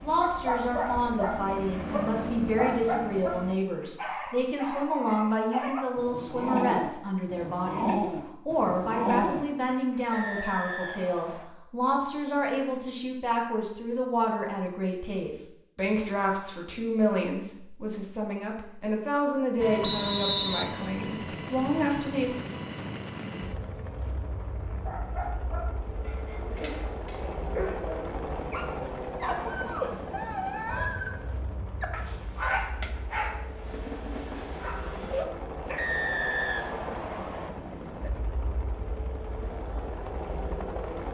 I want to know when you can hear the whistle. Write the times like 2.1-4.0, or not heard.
10.1-11.4, 19.8-20.6, 35.8-37.5.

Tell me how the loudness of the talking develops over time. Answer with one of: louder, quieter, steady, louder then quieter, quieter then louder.
steady.